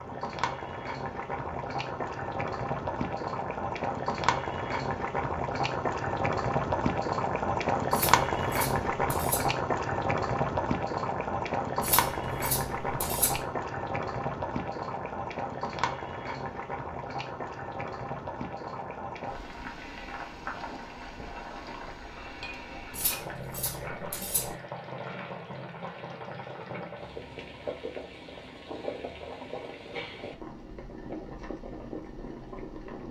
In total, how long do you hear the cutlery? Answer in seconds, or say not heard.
5 s.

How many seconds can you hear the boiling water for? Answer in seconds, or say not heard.
33 s.